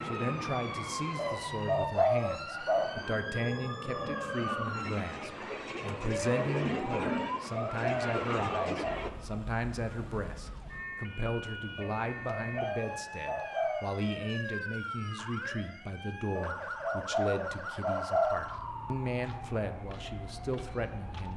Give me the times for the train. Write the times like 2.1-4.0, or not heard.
0.0-9.1.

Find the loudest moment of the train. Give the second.
7 s.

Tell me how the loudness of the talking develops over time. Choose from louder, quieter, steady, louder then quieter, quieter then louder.
steady.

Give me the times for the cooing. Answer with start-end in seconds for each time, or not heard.
1.1-3.0, 7.0-9.0, 11.8-13.9, 16.4-18.4.